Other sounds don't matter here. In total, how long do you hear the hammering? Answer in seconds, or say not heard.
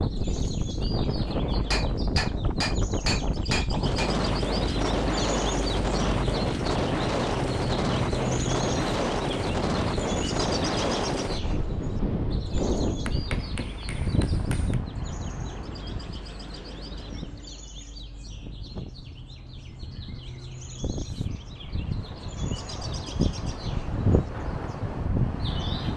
4 s.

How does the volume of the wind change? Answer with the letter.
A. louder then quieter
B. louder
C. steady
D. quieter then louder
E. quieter
D.